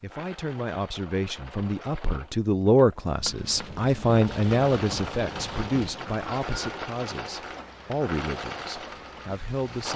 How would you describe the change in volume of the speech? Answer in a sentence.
The loudness of the speech goes up, then down.